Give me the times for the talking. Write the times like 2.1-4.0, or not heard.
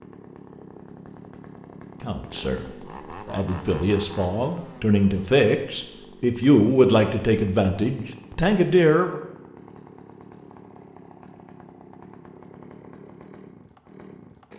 2.0-2.6, 3.2-9.2.